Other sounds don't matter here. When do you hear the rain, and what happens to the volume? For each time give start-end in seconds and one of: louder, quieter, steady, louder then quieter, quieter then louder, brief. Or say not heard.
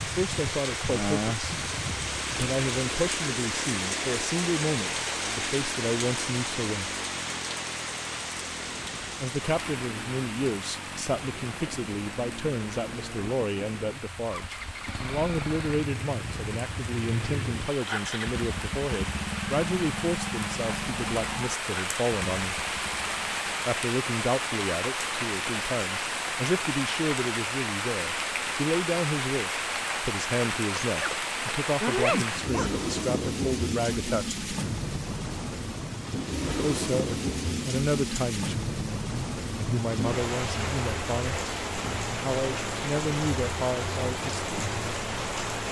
0.0-45.6 quieter then louder.